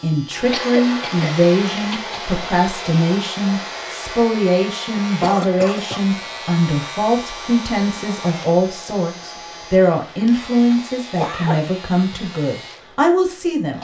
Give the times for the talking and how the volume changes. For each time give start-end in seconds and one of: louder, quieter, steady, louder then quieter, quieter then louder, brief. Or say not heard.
0.0-13.7 steady.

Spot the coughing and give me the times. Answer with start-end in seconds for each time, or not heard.
0.5-2.1, 5.0-6.0, 10.7-11.7.